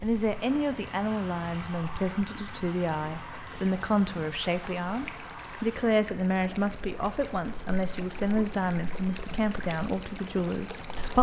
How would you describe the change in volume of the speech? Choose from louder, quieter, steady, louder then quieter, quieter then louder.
steady.